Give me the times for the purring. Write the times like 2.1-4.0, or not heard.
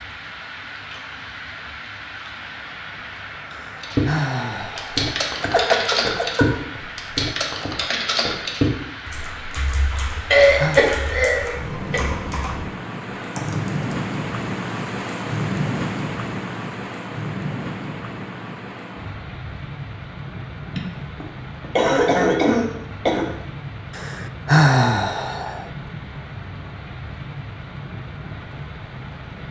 not heard.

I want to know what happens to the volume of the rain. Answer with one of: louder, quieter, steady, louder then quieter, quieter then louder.
louder then quieter.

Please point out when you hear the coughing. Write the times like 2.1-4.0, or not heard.
5.4-6.5, 10.3-12.0, 20.8-23.3.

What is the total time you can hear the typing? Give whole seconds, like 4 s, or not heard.
10 s.